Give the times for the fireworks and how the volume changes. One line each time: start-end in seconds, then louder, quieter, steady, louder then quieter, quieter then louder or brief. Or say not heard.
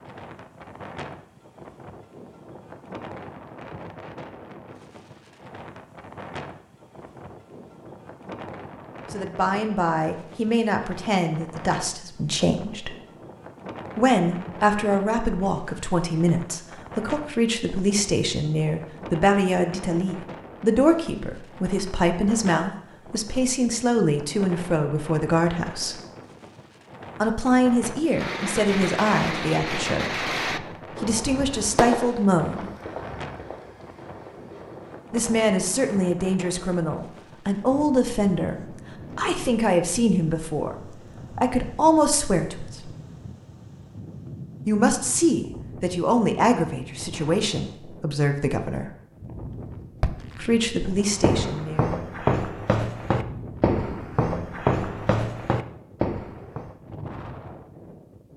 28.1-35.1 quieter.